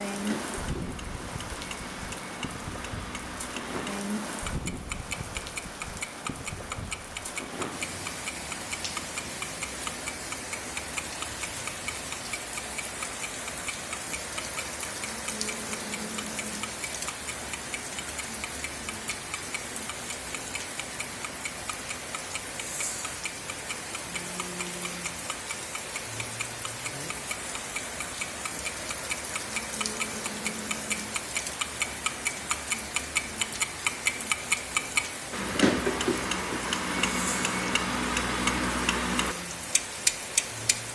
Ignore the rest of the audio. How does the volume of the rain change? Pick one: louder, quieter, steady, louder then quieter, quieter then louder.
steady.